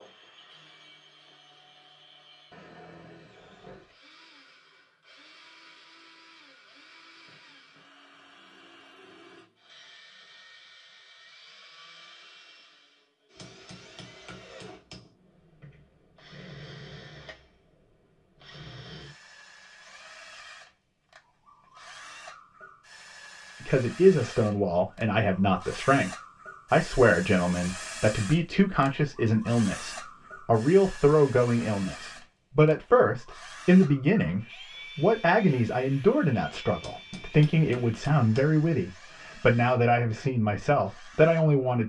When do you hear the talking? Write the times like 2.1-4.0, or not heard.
23.6-26.1, 26.7-41.8.